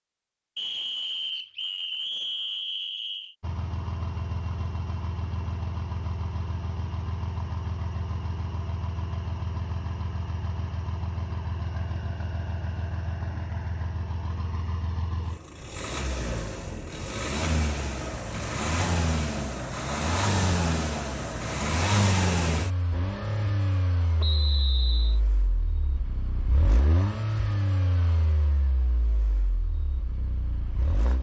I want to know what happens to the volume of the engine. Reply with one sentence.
The loudness of the engine goes up, then down.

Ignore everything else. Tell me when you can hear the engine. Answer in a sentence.
The engine can be heard from 3.4 to 31.1 s.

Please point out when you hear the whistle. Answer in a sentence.
You can hear the whistle from 0.6 to 3.4 s and from 24.2 to 25.2 s.